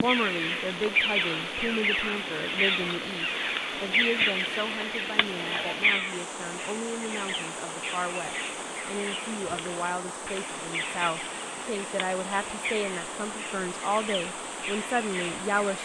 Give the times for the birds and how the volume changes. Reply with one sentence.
You can hear the birds from 0.0 to 15.8 s, getting quieter.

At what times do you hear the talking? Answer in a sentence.
The talking can be heard from 0.0 to 15.8 s.